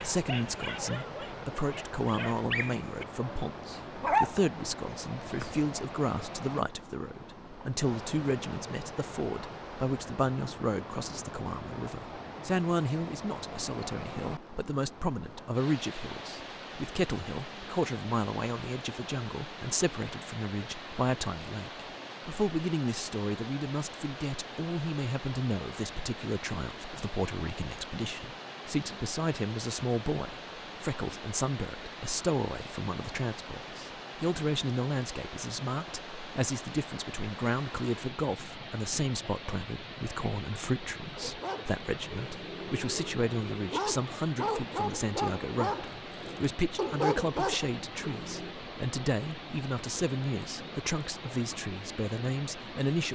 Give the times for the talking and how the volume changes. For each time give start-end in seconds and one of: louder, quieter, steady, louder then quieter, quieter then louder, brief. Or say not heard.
0.0-53.1 steady.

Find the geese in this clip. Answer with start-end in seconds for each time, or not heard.
not heard.